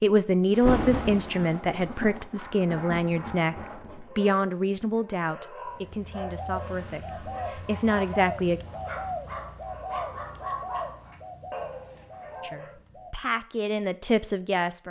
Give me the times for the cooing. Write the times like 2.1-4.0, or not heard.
5.5-13.2.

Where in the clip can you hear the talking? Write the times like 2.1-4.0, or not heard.
0.0-8.6, 12.4-14.8.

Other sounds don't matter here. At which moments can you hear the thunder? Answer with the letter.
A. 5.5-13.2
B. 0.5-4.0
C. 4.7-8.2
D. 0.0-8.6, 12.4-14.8
B.